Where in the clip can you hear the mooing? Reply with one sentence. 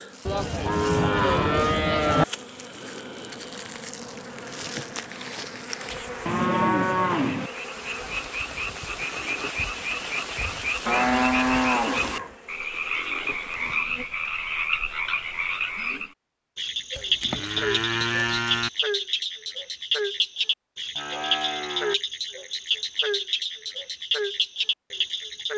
You can hear the mooing from 0.2 to 2.2 s, from 6.2 to 7.5 s, from 10.8 to 12.3 s, from 16.9 to 18.7 s and from 20.9 to 21.9 s.